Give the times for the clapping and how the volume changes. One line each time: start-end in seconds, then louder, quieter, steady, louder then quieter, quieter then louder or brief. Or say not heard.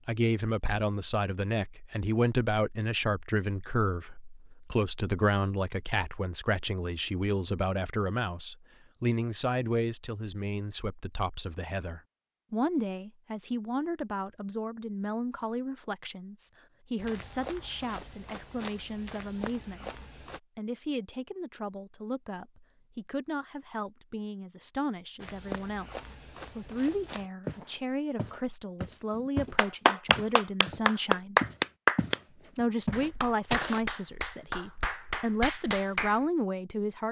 29.1-36.2 louder then quieter.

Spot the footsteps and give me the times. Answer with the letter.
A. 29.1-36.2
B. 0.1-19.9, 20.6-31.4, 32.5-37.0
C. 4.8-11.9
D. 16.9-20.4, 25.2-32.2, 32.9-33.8
D.